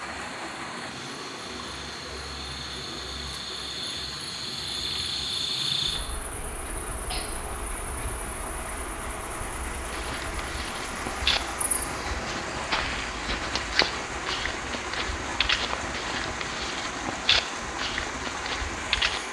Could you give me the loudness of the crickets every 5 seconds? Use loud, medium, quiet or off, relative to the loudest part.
loud, loud, medium, off.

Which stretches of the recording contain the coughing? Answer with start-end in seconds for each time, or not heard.
6.7-7.3.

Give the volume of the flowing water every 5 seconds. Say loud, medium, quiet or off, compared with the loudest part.
medium, medium, loud, loud.